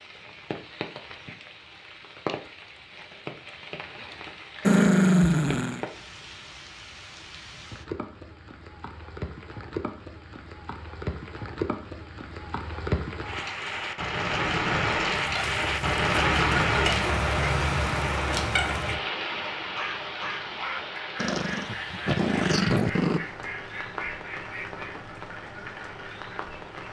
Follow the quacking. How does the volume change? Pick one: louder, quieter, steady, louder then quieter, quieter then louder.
quieter.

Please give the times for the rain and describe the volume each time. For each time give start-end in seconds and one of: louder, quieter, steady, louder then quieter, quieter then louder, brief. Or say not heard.
0.0-26.8 louder then quieter.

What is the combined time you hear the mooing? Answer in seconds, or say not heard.
not heard.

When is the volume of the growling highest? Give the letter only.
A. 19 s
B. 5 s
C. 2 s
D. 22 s
B.